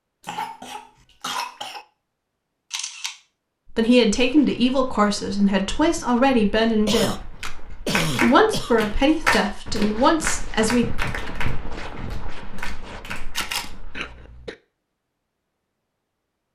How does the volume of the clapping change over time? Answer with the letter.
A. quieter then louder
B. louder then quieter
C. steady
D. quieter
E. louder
B.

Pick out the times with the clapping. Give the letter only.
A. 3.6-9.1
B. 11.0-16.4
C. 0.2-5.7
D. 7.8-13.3
D.